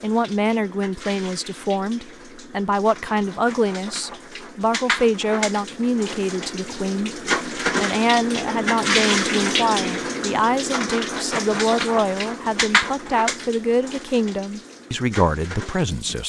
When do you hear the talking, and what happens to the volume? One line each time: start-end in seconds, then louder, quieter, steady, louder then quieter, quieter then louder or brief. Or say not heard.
0.0-16.2 steady.